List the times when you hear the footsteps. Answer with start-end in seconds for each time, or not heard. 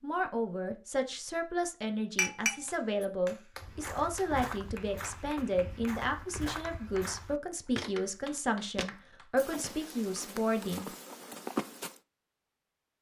3.5-12.0.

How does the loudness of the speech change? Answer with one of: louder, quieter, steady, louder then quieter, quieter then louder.
steady.